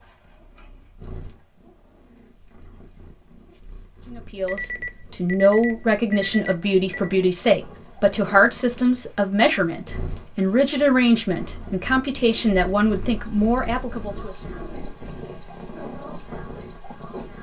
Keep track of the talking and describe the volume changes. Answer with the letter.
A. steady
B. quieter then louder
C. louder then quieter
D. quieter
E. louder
A.